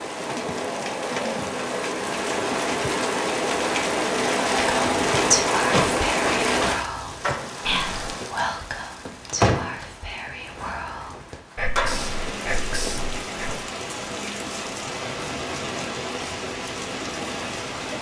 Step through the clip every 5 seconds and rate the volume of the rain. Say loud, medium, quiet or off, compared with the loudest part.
loud, loud, medium, medium.